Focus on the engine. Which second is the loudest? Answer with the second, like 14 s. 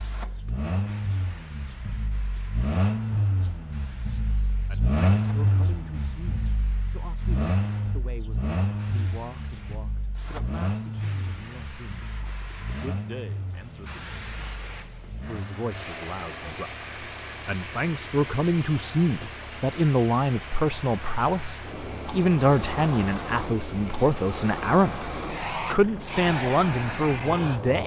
5 s.